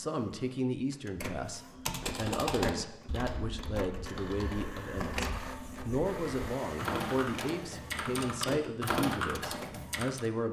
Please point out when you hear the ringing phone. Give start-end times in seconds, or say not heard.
not heard.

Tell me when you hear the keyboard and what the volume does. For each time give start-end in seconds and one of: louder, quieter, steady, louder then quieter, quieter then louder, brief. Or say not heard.
1.8-10.2 quieter then louder.